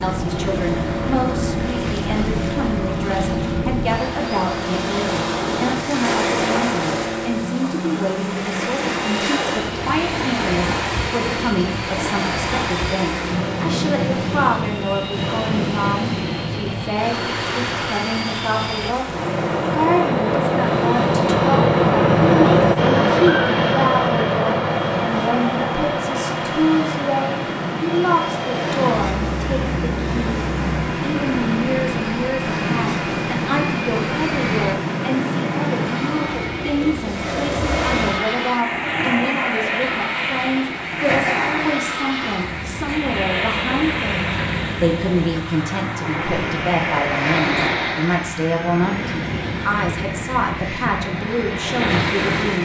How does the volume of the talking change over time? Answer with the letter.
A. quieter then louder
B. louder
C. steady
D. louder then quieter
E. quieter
C.